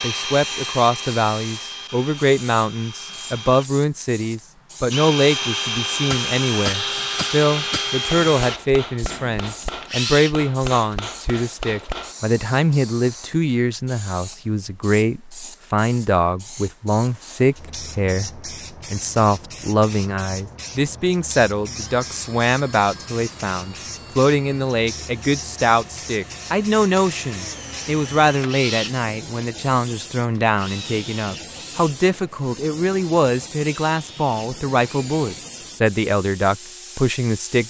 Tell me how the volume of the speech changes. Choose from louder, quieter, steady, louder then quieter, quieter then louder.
steady.